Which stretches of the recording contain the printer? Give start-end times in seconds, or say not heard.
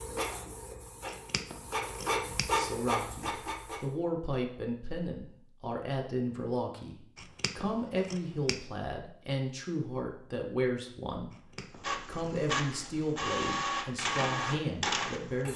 0.0-4.0, 11.7-15.5.